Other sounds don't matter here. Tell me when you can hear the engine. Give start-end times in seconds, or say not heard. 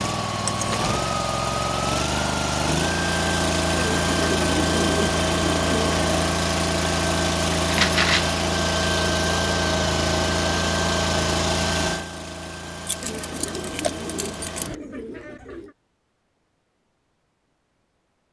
0.0-14.7.